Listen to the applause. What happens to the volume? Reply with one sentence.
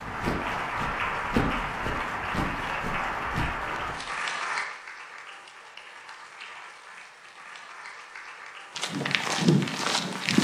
The volume of the applause goes down.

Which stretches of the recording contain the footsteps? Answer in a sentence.
The footsteps can be heard from 0.0 to 4.0 s and from 8.8 to 10.4 s.